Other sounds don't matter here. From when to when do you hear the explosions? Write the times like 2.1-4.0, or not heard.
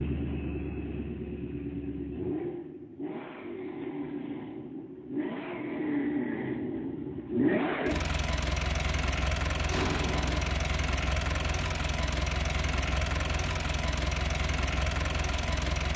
9.7-10.5.